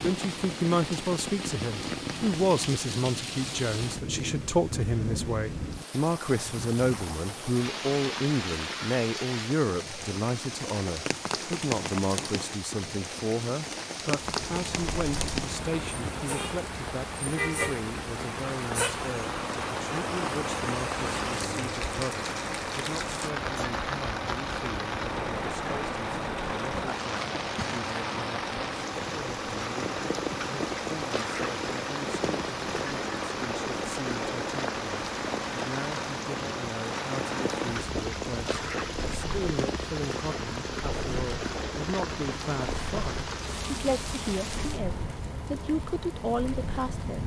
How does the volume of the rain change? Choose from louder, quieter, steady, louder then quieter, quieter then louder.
steady.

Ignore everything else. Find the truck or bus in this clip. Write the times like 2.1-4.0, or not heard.
14.1-47.2.